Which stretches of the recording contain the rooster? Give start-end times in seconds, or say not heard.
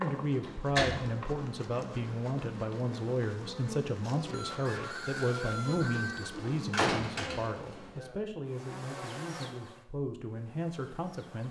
4.2-6.3.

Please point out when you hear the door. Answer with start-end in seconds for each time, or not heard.
0.4-1.1, 6.4-7.8.